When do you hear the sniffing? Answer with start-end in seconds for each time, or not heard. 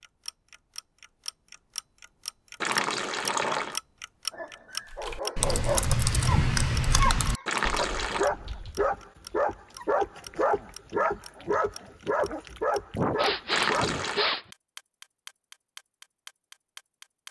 12.9-14.4.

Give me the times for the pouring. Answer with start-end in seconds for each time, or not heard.
2.6-3.8, 7.5-8.3, 13.5-14.2.